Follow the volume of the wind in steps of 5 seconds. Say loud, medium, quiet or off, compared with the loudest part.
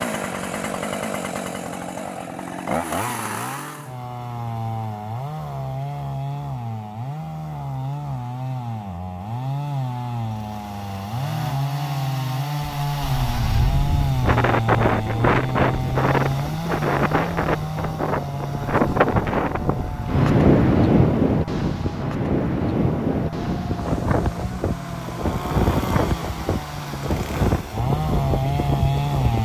off, off, loud, loud, loud, medium.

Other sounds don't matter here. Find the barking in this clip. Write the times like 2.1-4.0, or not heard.
not heard.